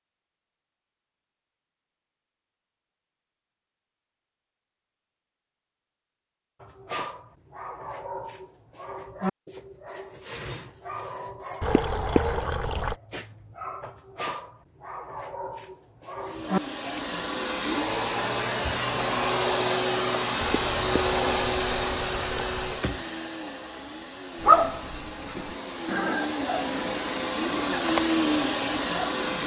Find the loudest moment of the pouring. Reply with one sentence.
The volume of the pouring peaks at 12 seconds.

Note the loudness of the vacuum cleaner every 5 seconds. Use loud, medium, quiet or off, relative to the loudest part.
off, off, off, loud, loud, loud.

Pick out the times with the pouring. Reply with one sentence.
The pouring can be heard from 11.6 to 12.9 s and from 20.4 to 22.9 s.